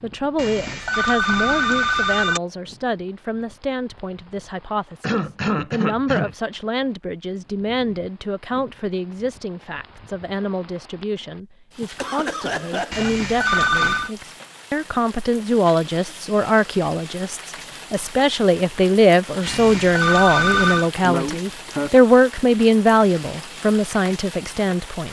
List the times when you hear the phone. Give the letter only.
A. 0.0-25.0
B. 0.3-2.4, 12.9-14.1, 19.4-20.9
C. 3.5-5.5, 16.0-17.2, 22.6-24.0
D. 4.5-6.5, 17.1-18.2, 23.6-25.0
B.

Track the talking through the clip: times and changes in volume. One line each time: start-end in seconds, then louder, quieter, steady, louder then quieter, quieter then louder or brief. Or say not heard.
0.0-25.0 louder.